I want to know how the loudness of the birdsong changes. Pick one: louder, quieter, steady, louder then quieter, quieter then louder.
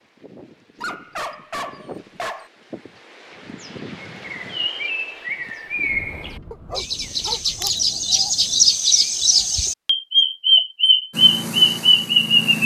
louder.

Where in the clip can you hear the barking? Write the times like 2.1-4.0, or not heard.
0.8-2.5, 6.5-7.8.